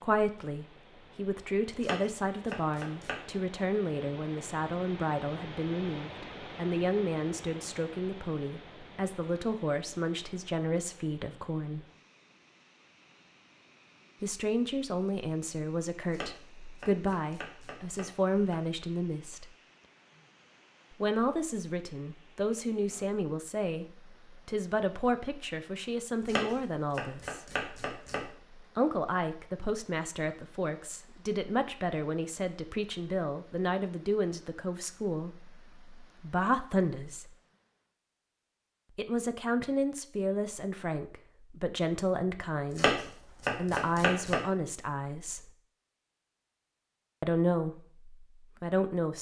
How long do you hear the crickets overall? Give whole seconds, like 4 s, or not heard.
not heard.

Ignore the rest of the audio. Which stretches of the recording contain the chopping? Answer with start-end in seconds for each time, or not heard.
1.8-3.1, 16.1-18.8, 26.2-28.2, 42.8-44.4.